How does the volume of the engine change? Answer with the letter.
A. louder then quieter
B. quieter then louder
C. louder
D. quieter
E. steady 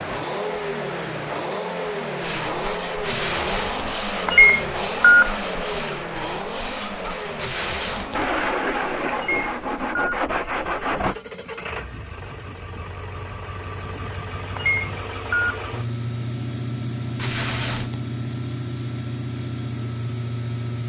B.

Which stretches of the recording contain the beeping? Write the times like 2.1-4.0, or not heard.
4.2-5.3, 9.2-10.2, 14.6-15.6.